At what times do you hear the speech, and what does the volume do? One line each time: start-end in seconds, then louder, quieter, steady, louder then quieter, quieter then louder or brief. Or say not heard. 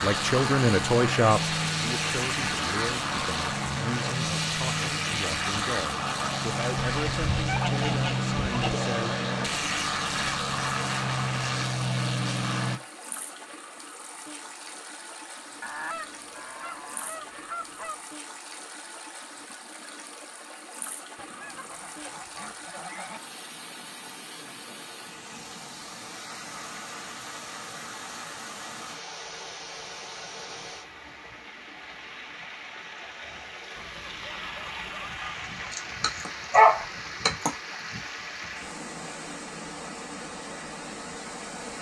0.0-9.2 quieter.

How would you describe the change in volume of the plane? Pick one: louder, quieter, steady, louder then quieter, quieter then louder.
steady.